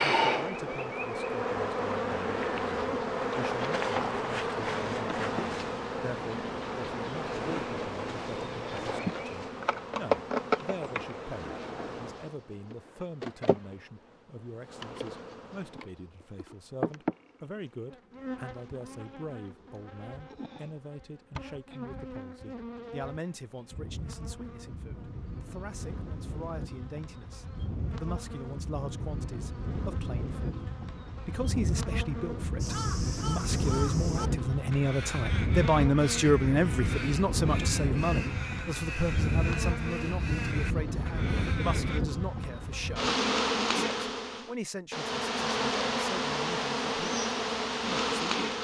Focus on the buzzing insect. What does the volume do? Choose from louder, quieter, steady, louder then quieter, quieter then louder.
quieter then louder.